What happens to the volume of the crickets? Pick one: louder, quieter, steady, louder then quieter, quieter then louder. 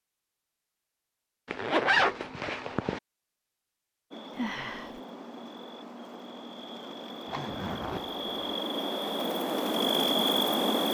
louder.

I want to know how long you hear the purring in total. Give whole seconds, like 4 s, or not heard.
not heard.